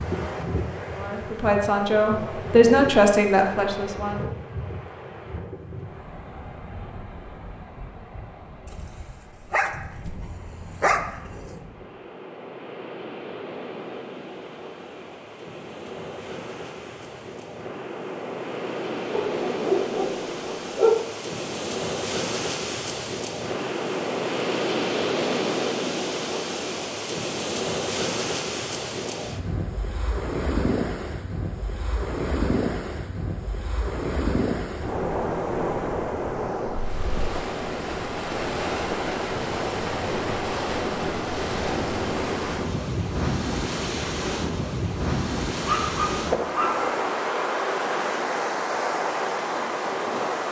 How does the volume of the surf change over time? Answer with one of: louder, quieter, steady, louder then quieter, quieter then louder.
louder.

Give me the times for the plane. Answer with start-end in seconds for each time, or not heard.
not heard.